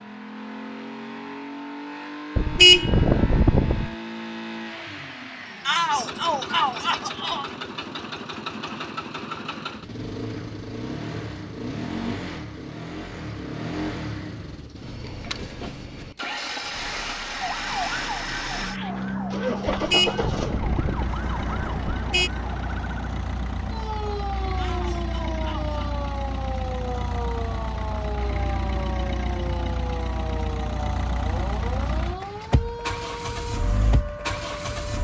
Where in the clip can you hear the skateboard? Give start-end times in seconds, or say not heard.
not heard.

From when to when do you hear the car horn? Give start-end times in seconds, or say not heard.
2.4-3.9, 19.6-22.3.